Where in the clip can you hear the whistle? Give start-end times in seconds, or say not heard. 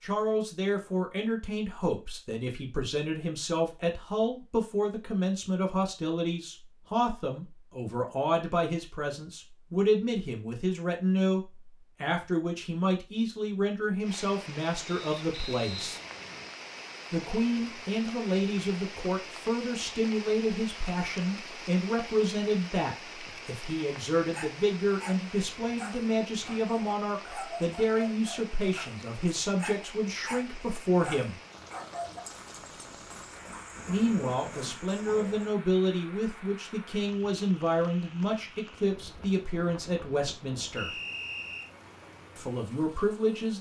14.8-16.5, 40.8-41.7.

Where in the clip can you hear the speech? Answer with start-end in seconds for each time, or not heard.
0.0-16.0, 17.1-31.4, 33.9-40.9, 42.4-43.5.